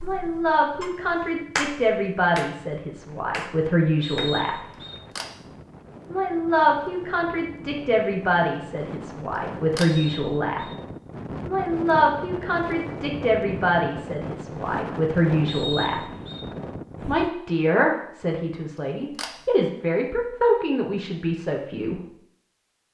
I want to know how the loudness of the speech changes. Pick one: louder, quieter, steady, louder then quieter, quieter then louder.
steady.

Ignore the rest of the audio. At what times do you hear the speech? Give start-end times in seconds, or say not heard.
0.0-4.6, 6.1-10.7, 11.4-16.1, 17.1-22.0.